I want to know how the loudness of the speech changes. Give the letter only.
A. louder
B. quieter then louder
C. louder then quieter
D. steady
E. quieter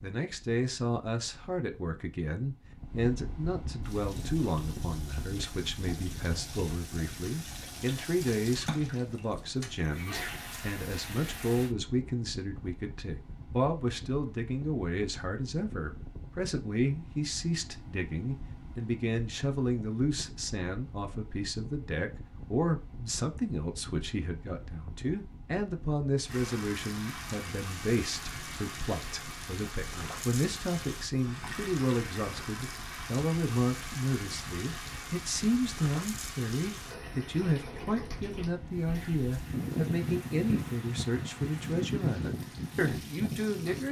D.